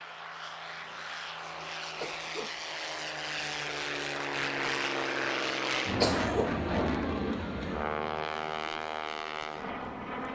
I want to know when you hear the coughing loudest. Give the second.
6 s.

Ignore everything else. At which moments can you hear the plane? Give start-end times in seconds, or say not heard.
0.0-10.3.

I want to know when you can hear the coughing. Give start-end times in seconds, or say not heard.
1.9-2.6, 6.0-6.6.